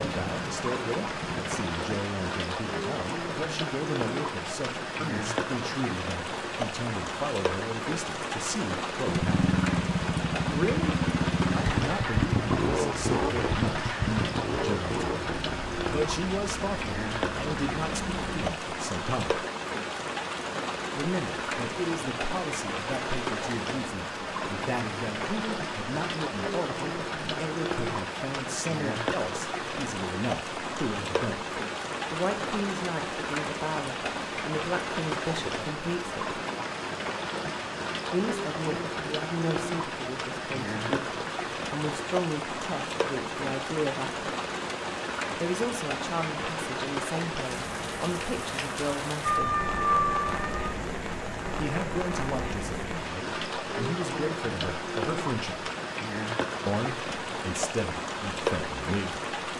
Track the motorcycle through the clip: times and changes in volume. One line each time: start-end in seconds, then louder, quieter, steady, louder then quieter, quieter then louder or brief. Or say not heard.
0.1-1.7 brief
9.1-18.6 quieter.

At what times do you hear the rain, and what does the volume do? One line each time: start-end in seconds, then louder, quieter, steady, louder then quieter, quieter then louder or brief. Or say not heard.
0.0-59.5 steady.